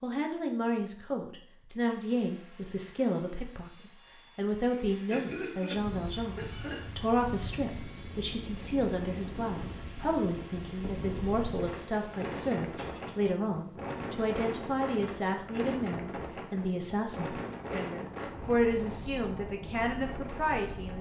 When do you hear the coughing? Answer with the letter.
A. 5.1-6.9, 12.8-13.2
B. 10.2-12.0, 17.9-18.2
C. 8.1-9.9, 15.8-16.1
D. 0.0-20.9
A.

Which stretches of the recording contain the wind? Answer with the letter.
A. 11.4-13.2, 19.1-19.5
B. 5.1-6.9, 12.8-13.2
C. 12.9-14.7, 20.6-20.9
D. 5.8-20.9
D.